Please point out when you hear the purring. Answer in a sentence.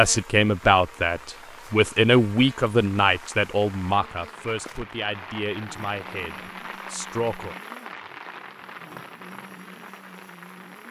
The purring can't be heard in this clip.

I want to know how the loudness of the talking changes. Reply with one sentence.
The volume of the talking goes down.